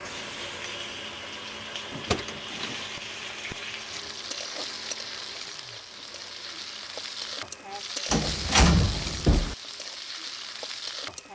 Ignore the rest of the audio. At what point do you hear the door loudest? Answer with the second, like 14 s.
9 s.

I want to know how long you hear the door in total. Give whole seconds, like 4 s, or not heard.
2 s.